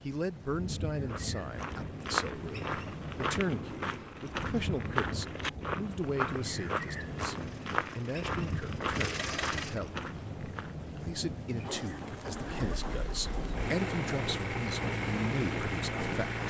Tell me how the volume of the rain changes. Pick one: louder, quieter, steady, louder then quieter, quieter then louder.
steady.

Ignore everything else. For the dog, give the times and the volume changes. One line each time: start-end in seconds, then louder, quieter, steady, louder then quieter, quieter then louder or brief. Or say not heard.
not heard.